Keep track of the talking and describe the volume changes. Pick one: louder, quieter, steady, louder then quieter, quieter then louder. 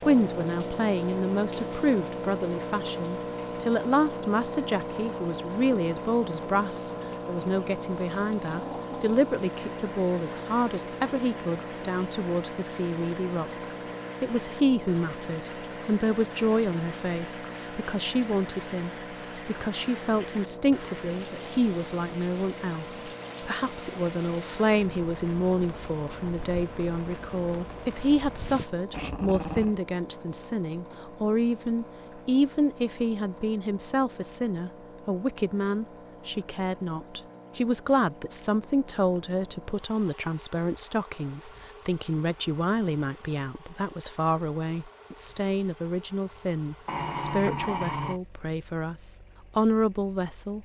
steady.